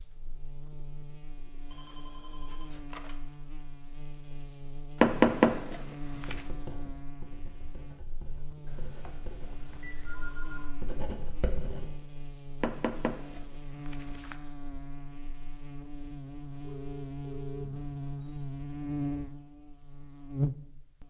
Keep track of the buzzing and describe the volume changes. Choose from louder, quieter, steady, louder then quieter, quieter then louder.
louder.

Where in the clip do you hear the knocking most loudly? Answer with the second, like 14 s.
5 s.